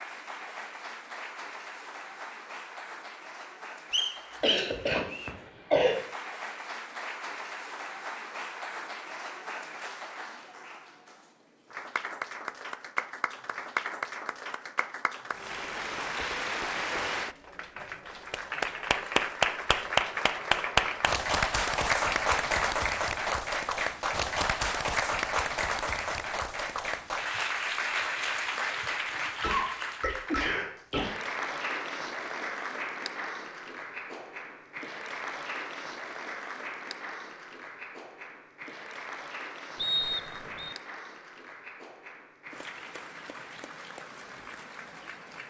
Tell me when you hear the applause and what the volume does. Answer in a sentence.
You can hear the applause from 0.0 to 45.4 s, getting louder then quieter.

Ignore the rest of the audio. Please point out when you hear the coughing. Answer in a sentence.
You can hear the coughing from 4.4 to 6.0 s and from 29.2 to 31.1 s.